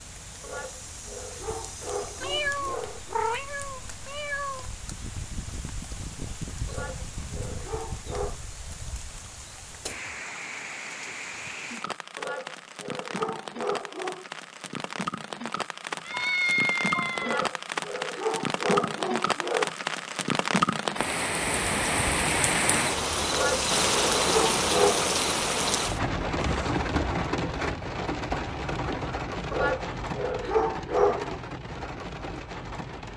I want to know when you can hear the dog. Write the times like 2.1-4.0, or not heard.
0.4-3.1, 6.7-8.4, 12.2-14.2, 17.2-19.8, 23.3-25.1, 29.5-31.4.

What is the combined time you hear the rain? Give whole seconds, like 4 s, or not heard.
33 s.